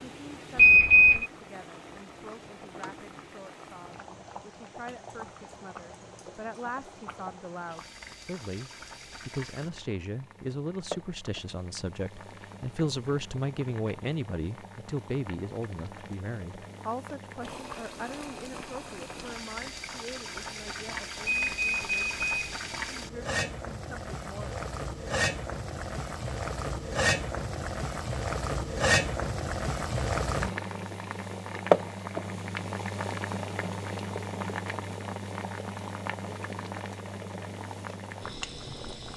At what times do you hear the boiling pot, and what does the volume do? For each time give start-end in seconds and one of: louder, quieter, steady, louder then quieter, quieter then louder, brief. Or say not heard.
0.0-39.1 louder.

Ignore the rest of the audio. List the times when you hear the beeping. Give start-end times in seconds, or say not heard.
0.6-1.2, 21.2-22.5.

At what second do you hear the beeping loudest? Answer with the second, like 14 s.
1 s.